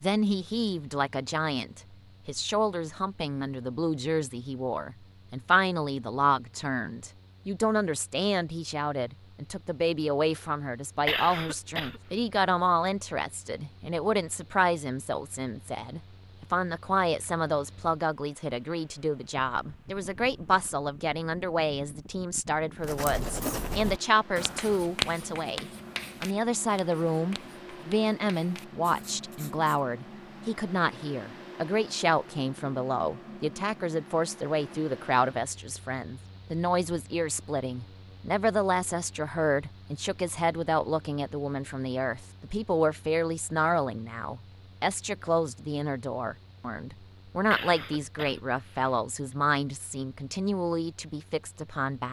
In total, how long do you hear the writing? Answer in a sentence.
The writing can be heard for 7 seconds in total.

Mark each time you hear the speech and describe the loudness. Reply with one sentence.
You can hear the speech from 0.0 to 52.0 s, at a steady volume.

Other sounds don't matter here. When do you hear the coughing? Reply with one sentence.
The coughing can be heard from 11.1 to 12.0 s and from 47.5 to 49.0 s.